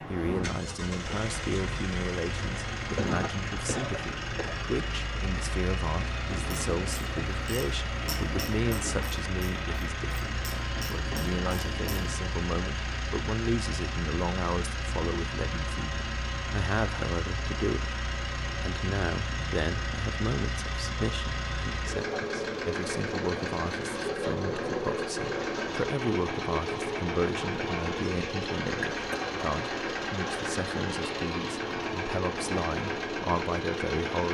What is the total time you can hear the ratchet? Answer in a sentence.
You can hear the ratchet for 6 seconds altogether.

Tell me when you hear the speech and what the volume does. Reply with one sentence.
You can hear the speech from 0.0 to 34.2 s, at a steady volume.